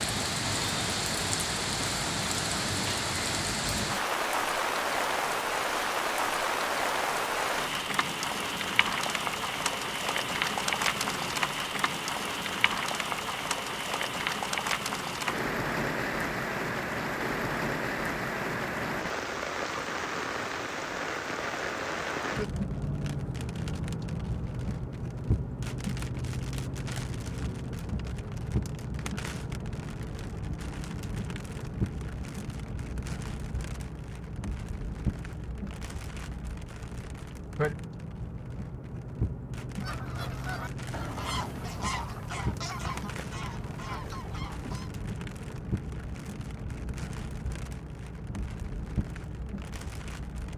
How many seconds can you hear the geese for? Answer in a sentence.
You can hear the geese for 5 seconds altogether.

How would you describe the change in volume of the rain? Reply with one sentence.
The loudness of the rain goes down.